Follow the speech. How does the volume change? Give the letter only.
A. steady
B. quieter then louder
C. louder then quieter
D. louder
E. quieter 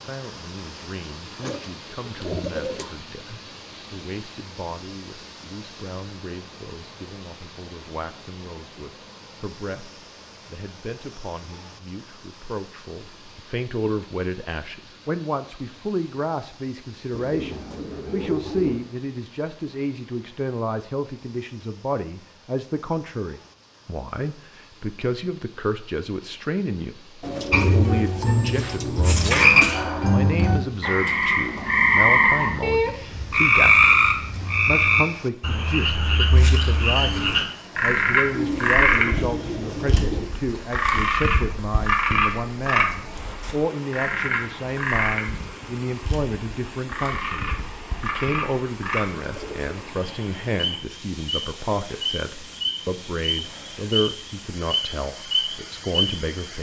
D.